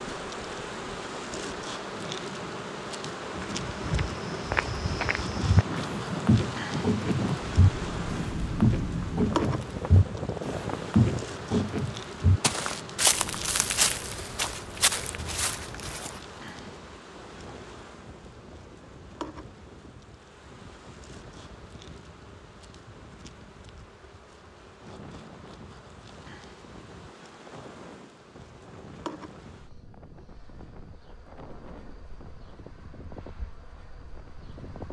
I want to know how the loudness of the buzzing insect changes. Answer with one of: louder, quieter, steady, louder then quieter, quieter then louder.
quieter.